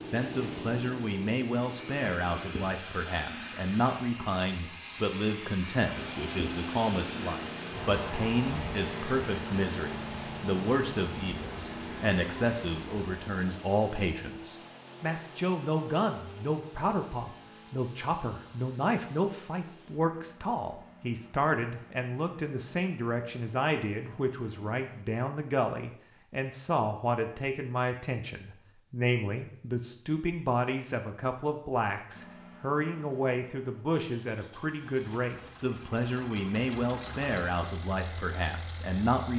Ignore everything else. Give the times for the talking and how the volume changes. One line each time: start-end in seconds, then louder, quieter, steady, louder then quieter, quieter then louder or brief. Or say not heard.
0.0-39.3 steady.